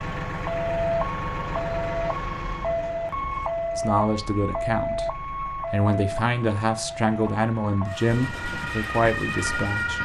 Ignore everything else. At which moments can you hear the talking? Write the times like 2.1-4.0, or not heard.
3.8-10.0.